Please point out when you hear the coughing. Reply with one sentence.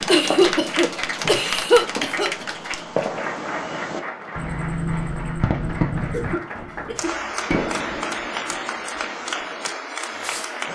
The coughing can be heard from 0.1 to 2.5 s and from 6.1 to 7.6 s.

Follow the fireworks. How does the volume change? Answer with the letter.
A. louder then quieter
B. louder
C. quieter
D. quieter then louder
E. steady
A.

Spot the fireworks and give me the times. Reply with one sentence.
You can hear the fireworks from 0.0 to 10.7 s.